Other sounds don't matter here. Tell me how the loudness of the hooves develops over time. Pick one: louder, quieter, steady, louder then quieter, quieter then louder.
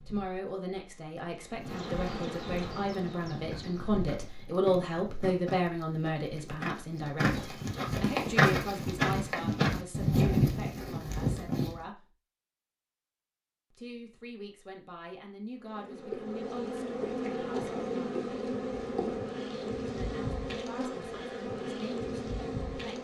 louder.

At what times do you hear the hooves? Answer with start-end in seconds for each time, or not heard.
1.4-11.8.